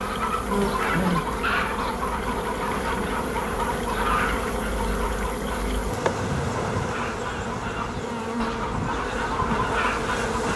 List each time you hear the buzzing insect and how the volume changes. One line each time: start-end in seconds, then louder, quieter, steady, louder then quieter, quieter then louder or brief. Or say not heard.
0.0-10.5 steady.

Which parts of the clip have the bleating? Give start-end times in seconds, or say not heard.
not heard.